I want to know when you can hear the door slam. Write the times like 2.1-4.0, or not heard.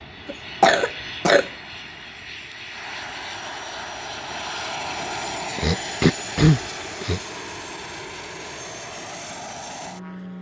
not heard.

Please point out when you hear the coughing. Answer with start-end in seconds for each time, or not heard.
0.2-1.5, 5.5-7.2.